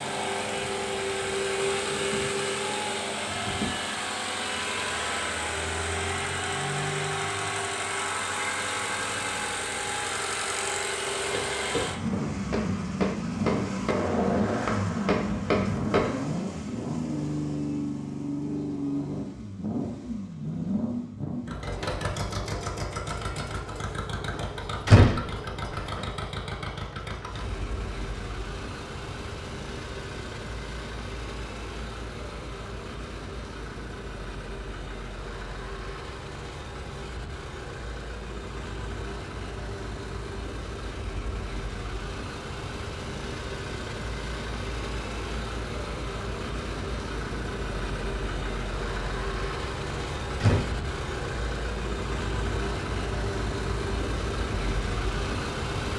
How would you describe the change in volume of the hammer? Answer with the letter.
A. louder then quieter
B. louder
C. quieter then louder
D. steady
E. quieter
B.